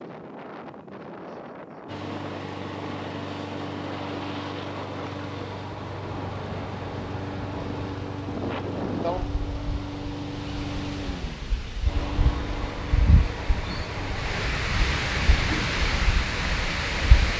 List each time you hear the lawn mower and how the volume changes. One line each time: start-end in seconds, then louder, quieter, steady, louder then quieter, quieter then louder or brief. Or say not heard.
1.9-14.5 steady.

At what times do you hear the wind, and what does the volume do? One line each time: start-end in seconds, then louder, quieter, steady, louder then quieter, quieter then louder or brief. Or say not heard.
0.0-17.3 louder.